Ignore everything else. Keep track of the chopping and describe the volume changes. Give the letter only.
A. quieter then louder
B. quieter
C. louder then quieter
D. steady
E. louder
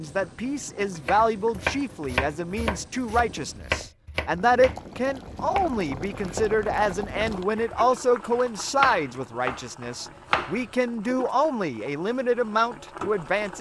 A.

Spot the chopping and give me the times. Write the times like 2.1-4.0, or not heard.
1.1-10.7.